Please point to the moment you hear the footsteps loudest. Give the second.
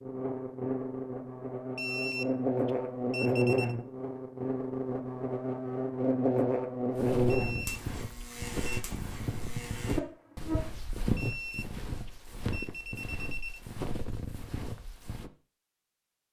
11 s.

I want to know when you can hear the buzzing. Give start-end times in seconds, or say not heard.
0.0-10.6.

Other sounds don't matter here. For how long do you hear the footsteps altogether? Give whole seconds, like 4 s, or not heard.
8 s.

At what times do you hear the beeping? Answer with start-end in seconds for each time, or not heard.
1.8-3.8, 7.2-8.8, 11.2-13.6.